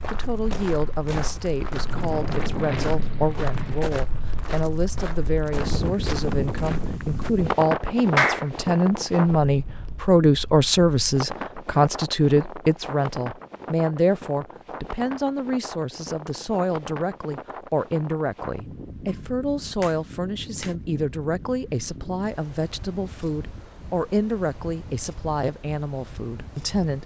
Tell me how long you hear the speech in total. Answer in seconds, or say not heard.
27 s.